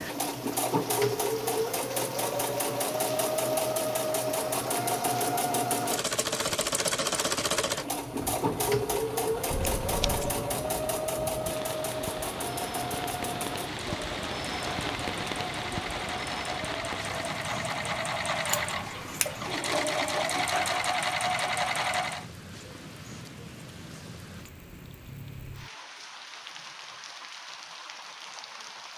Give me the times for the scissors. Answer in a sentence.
You can hear the scissors from 9.5 to 10.4 s and from 18.4 to 19.5 s.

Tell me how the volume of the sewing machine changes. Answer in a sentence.
The volume of the sewing machine goes down, then up.